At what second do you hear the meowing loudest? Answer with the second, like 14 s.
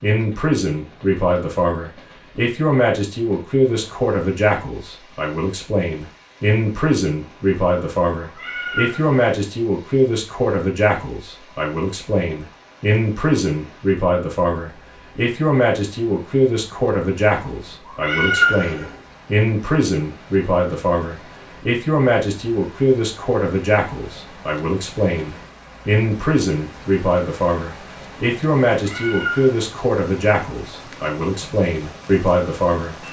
18 s.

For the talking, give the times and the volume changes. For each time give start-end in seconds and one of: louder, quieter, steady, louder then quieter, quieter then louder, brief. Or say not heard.
0.0-33.0 steady.